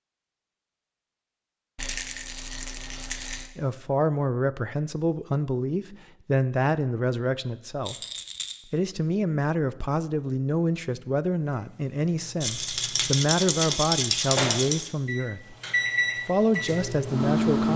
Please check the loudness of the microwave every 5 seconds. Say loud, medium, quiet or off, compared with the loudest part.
off, off, medium, loud.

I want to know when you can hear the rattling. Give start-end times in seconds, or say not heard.
1.8-3.5, 7.8-8.6, 12.4-14.9.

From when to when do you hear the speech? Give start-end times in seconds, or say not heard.
3.5-8.0, 8.7-15.6, 16.2-17.7.